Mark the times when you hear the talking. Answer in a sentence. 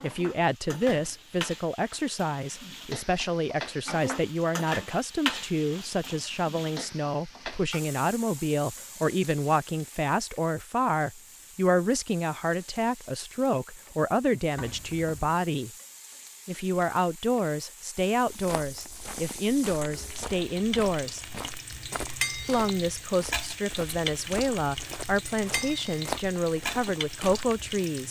You can hear the talking from 0.0 to 15.7 s, from 16.4 to 21.2 s and from 22.4 to 28.0 s.